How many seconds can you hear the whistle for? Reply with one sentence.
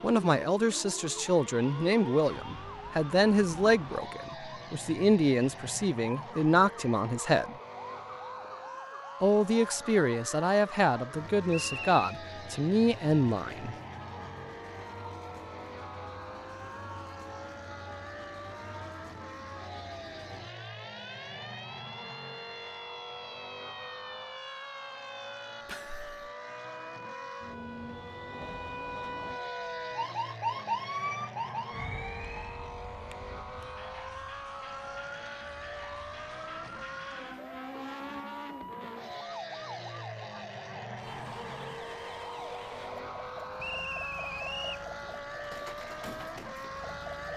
The whistle can be heard for 2 seconds in total.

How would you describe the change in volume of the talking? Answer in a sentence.
The loudness of the talking stays about the same.